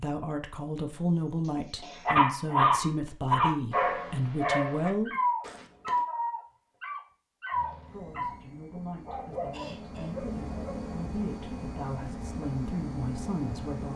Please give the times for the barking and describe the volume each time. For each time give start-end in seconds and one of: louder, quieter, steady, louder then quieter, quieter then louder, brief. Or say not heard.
2.0-10.8 quieter.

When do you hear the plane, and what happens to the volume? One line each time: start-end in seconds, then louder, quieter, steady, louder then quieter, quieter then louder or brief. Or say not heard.
7.5-13.9 louder.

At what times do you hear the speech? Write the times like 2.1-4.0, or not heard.
0.0-5.1, 7.9-13.9.